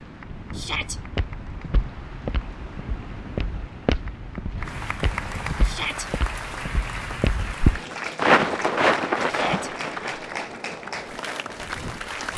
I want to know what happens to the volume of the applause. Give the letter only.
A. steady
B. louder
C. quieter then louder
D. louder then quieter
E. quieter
B.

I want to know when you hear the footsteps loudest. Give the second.
8 s.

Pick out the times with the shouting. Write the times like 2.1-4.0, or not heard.
0.6-1.0, 5.6-6.0, 9.2-9.7.